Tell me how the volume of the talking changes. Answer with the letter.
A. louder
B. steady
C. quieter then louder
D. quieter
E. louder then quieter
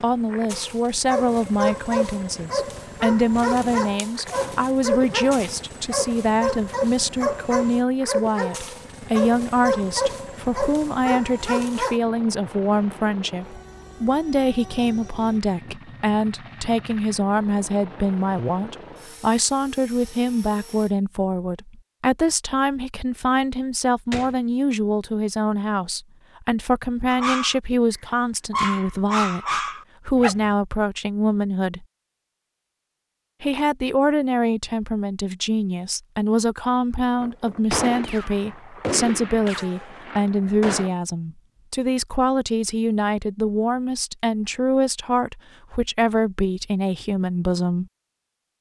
B.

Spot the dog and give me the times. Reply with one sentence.
The dog can be heard from 0.5 to 12.0 s and from 27.1 to 30.6 s.